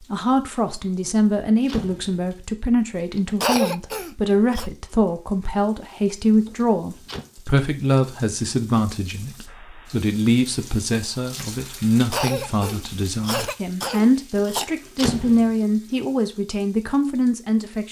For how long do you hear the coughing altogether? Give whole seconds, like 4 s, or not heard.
4 s.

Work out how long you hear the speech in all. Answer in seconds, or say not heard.
18 s.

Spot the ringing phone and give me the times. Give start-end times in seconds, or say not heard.
not heard.